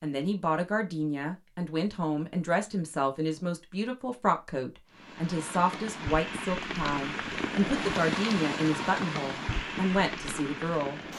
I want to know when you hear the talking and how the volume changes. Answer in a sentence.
You can hear the talking from 0.0 to 11.0 s, at a steady volume.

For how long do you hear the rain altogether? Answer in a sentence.
The rain can be heard for 6 seconds in total.